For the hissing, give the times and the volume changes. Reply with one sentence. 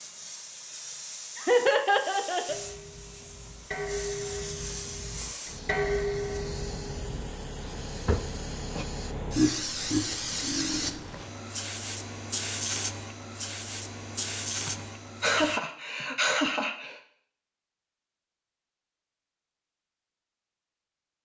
The hissing can be heard from 0.0 to 15.6 s, getting louder.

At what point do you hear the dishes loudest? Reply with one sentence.
The loudest moment of the dishes is at 6 seconds.